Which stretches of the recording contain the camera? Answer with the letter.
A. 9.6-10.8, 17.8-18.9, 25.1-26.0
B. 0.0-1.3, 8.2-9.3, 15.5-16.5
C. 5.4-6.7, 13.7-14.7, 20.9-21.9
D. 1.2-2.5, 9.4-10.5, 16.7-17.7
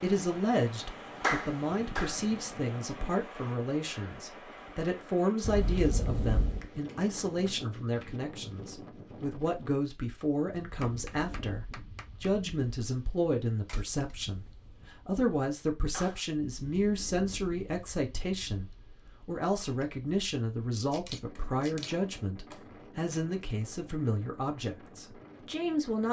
C.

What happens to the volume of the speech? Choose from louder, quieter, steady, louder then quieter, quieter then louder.
steady.